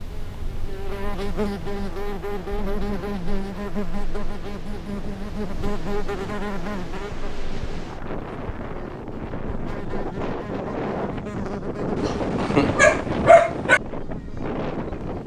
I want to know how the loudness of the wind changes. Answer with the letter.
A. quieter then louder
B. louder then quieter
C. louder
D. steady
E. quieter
C.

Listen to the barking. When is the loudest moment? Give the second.
13 s.